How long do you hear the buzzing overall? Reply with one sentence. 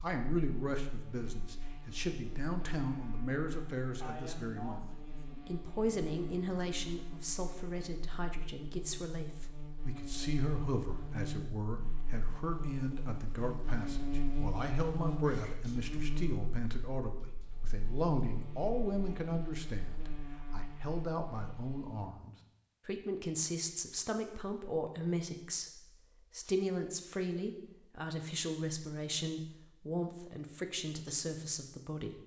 You can hear the buzzing for 22 seconds altogether.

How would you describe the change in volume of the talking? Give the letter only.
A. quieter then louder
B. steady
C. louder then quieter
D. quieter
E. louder
B.